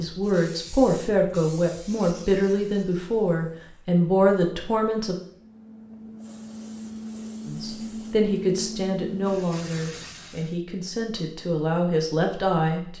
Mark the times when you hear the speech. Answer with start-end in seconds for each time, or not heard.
0.0-5.2, 7.5-12.9.